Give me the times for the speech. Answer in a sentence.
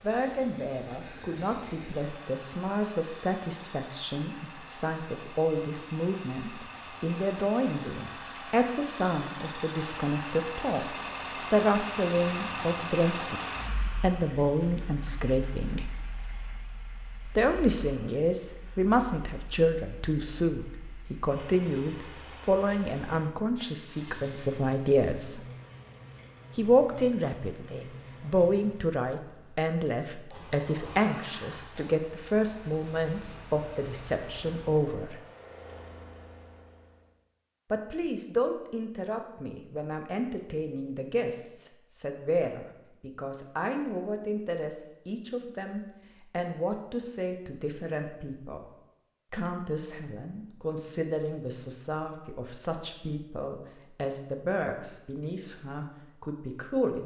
You can hear the speech from 0.0 to 15.9 s, from 17.2 to 25.4 s, from 26.6 to 35.1 s, from 37.7 to 48.6 s and from 49.3 to 57.0 s.